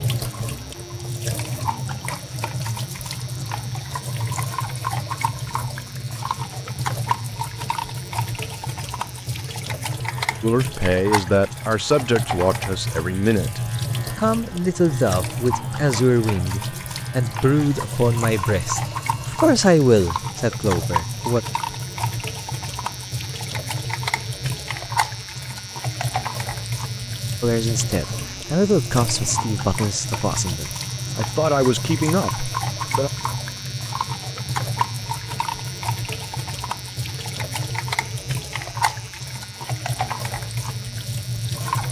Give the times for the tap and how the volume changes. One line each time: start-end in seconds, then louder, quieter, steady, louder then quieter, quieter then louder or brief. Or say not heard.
0.0-41.8 steady.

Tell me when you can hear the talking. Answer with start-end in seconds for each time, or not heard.
10.4-21.4, 27.4-33.1.